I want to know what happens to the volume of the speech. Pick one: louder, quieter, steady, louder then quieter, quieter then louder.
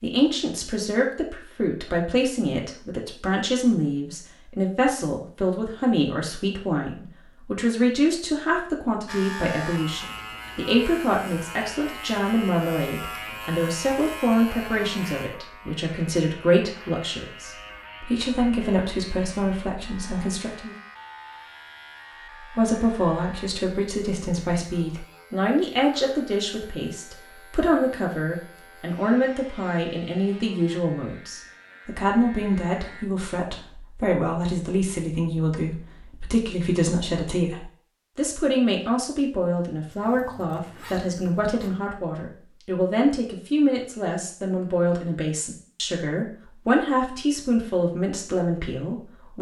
steady.